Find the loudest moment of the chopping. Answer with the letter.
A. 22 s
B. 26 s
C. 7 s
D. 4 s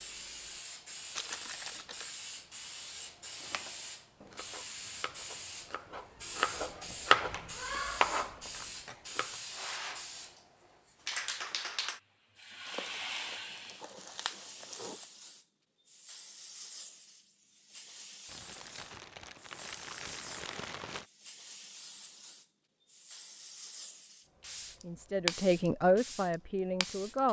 C.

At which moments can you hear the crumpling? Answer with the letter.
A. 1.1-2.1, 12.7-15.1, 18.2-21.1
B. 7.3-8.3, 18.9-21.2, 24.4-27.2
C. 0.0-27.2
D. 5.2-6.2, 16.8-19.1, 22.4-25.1
A.